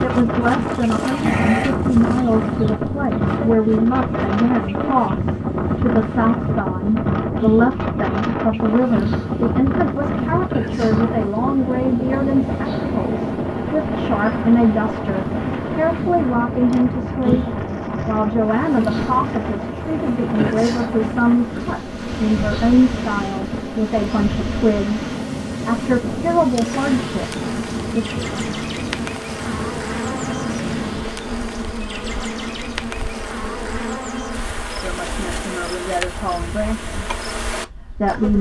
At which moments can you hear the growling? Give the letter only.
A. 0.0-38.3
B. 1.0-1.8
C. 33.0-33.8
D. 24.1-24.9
B.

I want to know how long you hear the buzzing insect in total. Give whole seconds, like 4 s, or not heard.
38 s.